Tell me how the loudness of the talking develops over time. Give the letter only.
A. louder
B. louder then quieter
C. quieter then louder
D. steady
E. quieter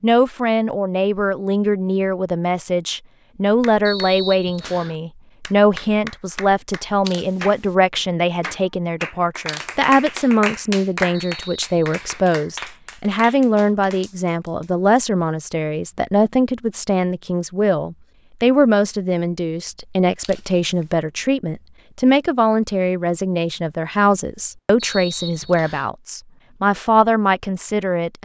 D.